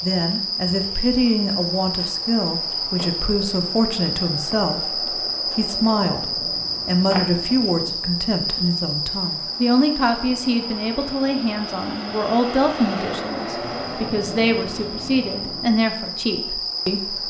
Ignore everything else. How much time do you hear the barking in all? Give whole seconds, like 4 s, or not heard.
not heard.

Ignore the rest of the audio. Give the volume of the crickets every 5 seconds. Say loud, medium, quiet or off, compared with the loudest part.
loud, loud, medium, loud.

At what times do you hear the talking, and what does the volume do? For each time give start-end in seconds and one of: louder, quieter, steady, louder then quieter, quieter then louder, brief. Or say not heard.
0.0-17.2 steady.